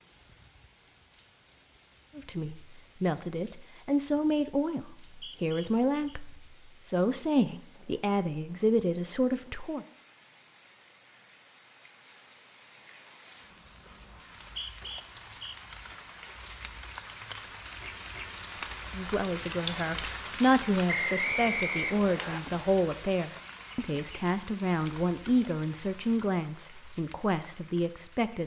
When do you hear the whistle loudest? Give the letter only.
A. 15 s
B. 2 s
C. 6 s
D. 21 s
D.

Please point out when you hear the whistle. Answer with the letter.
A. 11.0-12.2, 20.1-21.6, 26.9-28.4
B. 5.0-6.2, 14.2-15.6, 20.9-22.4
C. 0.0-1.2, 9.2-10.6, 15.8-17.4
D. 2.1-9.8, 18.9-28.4
B.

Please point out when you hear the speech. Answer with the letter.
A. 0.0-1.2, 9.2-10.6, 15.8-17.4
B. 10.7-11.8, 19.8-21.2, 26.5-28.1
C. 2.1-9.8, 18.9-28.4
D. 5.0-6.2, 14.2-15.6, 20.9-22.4
C.